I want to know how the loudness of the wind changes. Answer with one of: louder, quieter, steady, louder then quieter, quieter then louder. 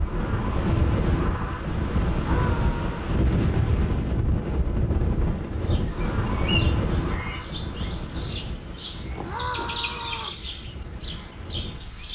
quieter.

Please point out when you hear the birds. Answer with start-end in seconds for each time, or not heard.
5.7-12.1.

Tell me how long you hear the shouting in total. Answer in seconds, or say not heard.
2 s.